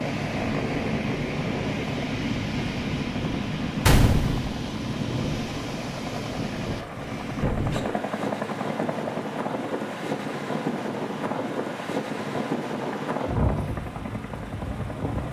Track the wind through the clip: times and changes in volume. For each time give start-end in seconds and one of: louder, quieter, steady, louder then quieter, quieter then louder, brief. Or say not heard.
0.0-15.2 steady.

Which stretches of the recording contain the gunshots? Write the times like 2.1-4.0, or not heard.
3.9-4.5.